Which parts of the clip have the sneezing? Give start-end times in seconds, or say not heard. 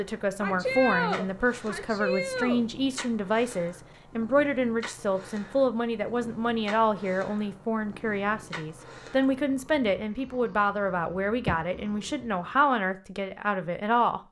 0.4-2.6.